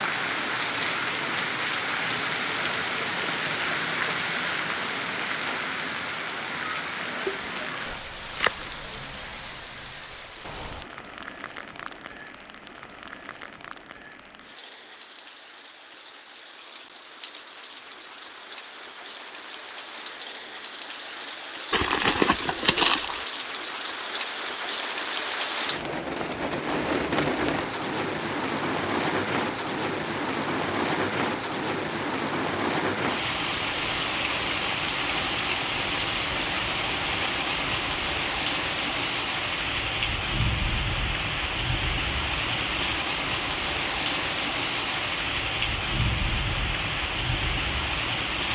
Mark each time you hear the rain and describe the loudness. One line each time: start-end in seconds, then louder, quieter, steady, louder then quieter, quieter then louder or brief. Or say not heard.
0.0-48.5 quieter then louder.